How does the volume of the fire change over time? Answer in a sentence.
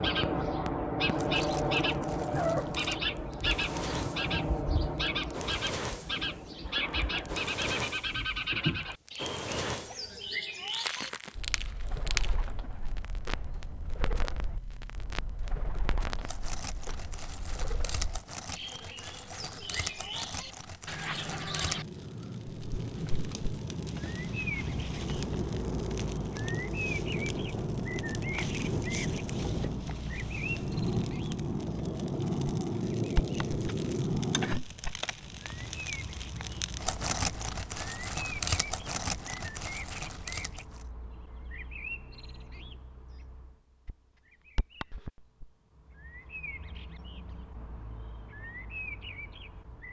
The loudness of the fire goes up.